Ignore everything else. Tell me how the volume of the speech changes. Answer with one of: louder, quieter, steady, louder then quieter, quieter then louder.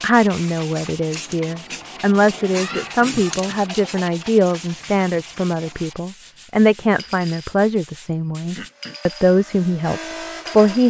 steady.